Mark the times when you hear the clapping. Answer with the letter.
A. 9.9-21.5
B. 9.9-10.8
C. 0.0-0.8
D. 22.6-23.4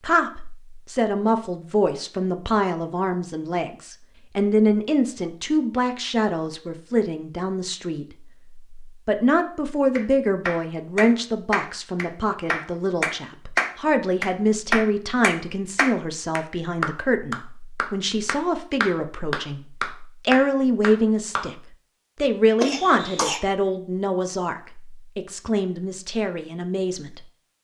A.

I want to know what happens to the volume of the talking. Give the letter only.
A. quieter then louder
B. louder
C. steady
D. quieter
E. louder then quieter
C.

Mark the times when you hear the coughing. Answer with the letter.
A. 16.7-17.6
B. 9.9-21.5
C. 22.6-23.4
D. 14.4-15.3
C.